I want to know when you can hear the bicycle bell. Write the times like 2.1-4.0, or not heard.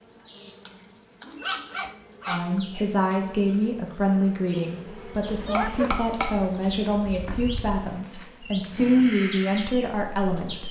5.5-6.7.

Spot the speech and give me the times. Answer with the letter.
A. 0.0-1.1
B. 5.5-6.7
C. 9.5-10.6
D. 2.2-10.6
D.